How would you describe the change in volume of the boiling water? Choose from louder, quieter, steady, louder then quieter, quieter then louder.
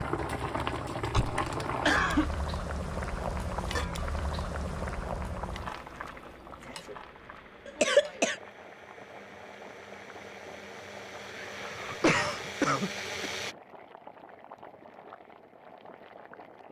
quieter.